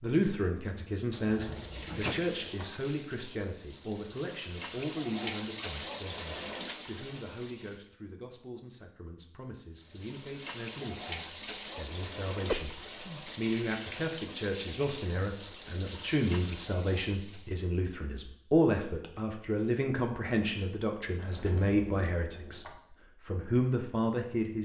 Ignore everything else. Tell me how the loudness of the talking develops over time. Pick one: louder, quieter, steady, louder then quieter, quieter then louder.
quieter then louder.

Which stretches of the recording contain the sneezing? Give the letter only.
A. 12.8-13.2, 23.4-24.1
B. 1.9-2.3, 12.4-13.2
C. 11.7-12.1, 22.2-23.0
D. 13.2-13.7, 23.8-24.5
B.